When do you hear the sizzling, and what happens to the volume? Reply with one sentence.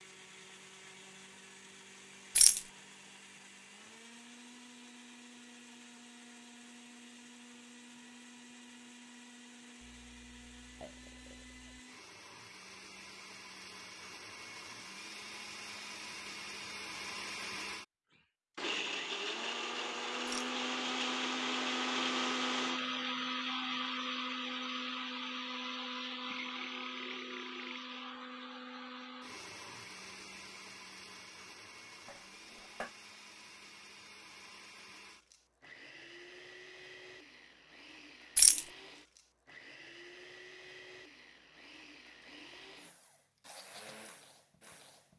The sizzling can't be heard in this clip.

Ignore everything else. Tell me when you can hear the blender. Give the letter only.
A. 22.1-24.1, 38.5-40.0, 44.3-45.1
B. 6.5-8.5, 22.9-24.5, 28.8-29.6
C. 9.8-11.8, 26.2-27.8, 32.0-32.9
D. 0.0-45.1
D.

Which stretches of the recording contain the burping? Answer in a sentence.
You can hear the burping from 9.8 to 11.8 s, from 26.2 to 27.8 s and from 32.0 to 32.9 s.